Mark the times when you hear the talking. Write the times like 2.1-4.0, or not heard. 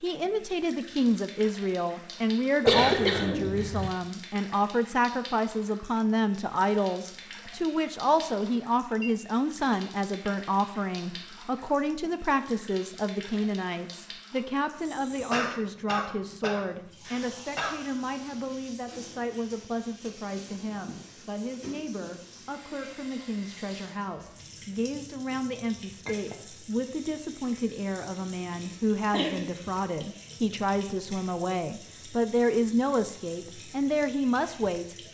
0.0-35.0.